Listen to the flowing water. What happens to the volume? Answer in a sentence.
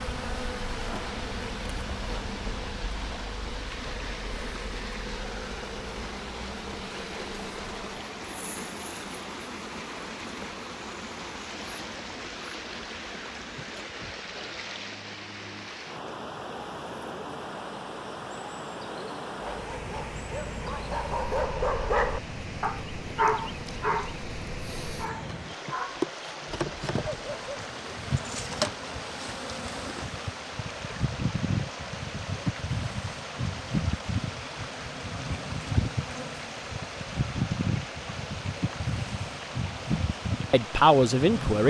The loudness of the flowing water stays about the same.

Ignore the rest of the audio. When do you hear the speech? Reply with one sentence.
You can hear the speech from 40.5 to 41.6 s.